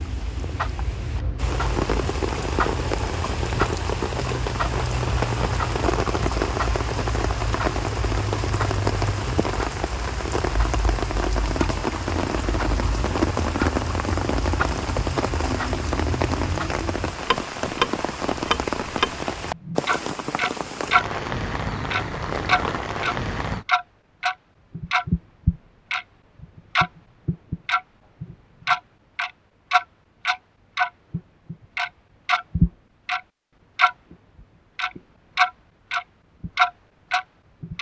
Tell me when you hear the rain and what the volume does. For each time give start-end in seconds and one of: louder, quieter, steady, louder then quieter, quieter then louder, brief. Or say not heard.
0.0-23.6 steady.